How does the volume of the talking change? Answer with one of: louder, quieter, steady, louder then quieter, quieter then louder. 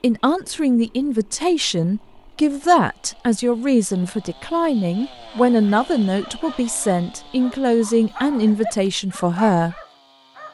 steady.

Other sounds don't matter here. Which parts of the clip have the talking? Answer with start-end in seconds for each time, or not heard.
0.0-9.8.